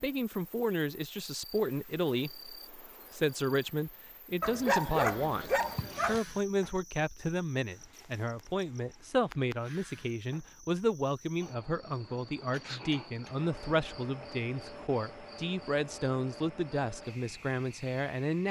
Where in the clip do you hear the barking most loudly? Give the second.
5 s.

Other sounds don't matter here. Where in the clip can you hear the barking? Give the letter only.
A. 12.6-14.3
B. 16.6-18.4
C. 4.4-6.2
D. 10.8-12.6
C.